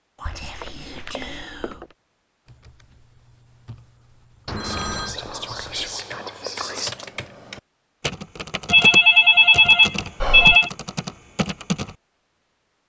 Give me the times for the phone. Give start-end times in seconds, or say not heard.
0.2-1.9, 4.5-5.2, 8.7-10.7.